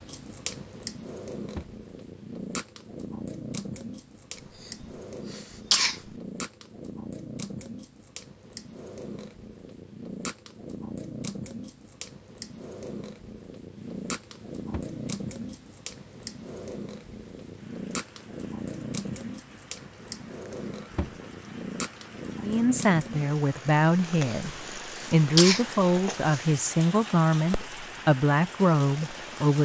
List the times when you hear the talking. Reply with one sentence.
The talking can be heard from 22.4 to 24.5 s and from 25.1 to 29.5 s.